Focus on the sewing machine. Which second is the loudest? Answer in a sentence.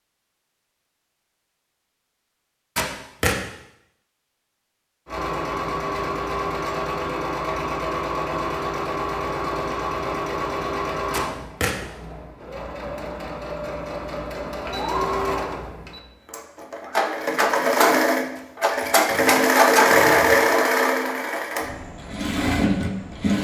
The volume of the sewing machine peaks at 20 seconds.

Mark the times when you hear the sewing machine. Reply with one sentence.
You can hear the sewing machine from 5.0 to 23.3 s.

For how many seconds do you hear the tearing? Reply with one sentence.
You can hear the tearing for 3 seconds altogether.